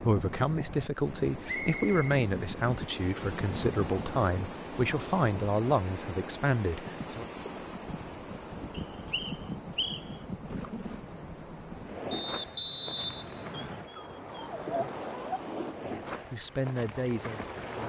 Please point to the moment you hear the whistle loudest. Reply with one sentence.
The volume of the whistle peaks at 13 seconds.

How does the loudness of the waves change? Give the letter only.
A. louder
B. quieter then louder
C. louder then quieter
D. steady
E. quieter
D.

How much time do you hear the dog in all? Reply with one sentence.
You can hear the dog for 2 seconds altogether.